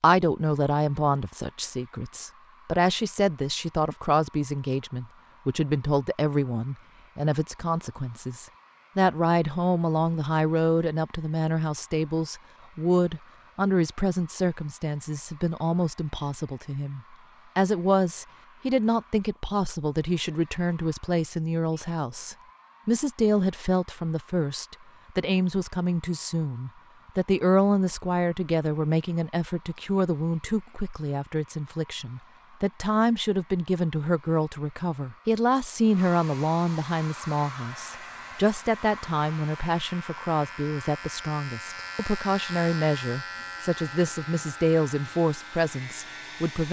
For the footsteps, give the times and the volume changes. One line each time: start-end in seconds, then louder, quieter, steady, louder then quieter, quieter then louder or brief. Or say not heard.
not heard.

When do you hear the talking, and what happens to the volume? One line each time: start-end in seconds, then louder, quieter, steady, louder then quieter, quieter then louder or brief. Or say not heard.
0.0-46.6 steady.